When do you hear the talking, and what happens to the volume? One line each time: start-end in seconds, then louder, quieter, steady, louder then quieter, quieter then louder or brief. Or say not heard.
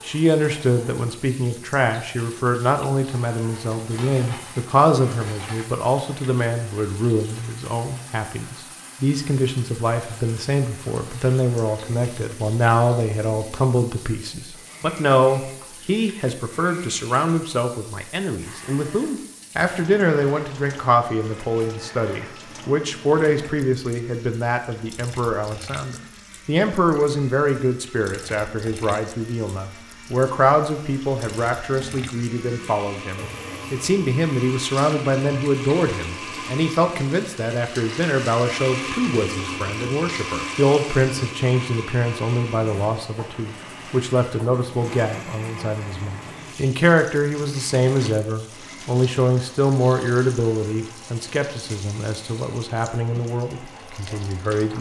0.1-54.7 steady.